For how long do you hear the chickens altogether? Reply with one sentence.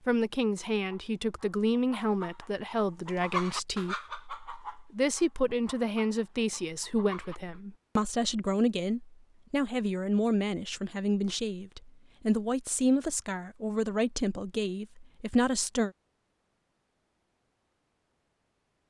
You can hear the chickens for 7 seconds altogether.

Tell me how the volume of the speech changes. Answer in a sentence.
The volume of the speech stays about the same.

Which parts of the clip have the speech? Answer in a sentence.
You can hear the speech from 0.1 to 15.9 s.